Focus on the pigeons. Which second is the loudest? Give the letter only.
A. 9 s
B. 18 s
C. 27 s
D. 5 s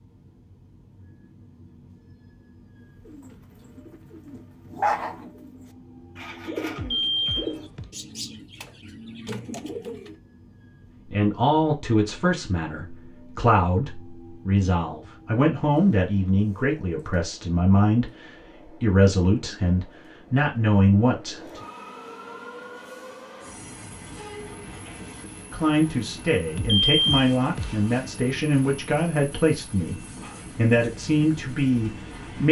D.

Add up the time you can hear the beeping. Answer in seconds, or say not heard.
2 s.